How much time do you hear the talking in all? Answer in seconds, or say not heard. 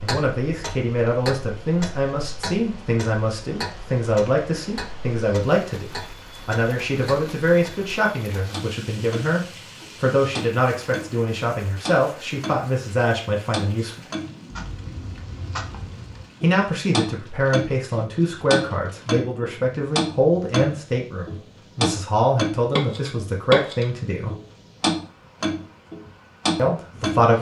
23 s.